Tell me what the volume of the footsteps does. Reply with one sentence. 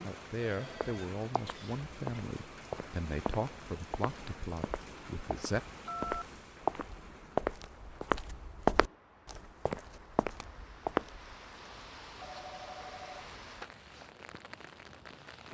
The loudness of the footsteps goes up, then down.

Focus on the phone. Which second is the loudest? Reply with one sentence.
The volume of the phone peaks at 6 seconds.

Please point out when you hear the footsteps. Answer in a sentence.
You can hear the footsteps from 0.8 to 11.3 s.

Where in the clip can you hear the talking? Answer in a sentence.
The talking can be heard from 0.0 to 5.6 s.